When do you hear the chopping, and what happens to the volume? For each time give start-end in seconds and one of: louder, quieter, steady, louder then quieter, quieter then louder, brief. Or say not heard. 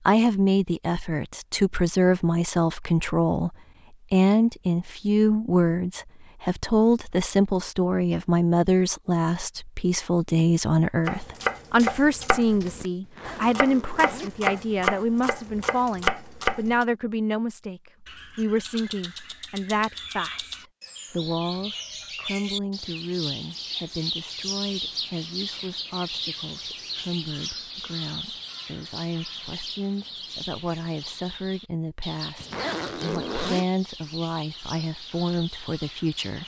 11.1-16.9 quieter then louder.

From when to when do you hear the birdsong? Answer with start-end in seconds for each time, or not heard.
18.1-36.4.